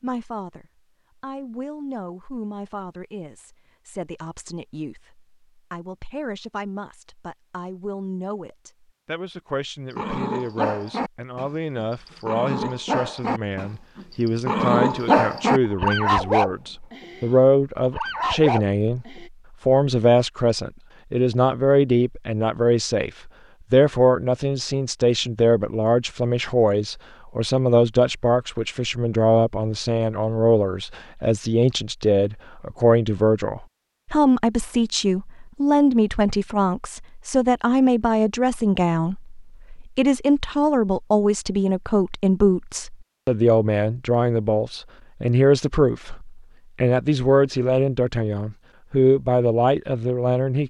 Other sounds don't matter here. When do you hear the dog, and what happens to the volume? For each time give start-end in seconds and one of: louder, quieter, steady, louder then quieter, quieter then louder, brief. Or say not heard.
9.9-19.3 louder then quieter.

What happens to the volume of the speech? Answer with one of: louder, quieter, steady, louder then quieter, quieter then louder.
louder.